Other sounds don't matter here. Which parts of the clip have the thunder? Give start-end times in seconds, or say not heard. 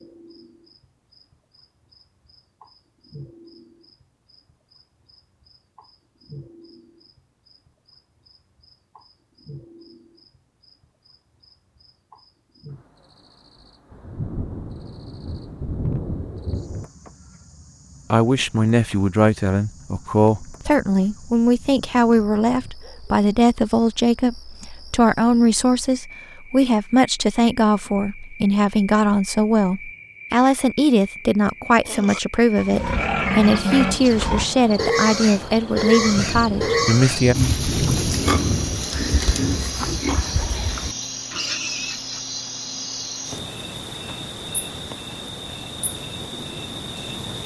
13.9-16.9, 36.0-39.8.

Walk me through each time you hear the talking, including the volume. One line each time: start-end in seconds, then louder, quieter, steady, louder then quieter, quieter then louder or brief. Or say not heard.
18.1-37.4 steady.